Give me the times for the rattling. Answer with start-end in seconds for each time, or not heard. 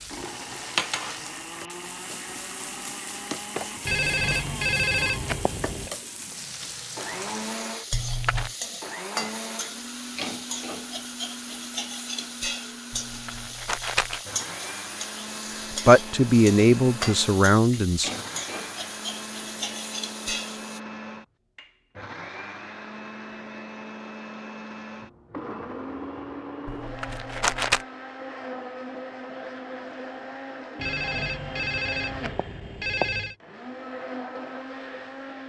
7.9-8.6, 12.9-14.2, 26.6-27.9.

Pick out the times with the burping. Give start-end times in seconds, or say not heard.
not heard.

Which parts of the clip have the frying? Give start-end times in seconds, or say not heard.
0.0-20.8.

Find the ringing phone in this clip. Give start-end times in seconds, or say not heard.
3.9-5.9, 30.8-33.4.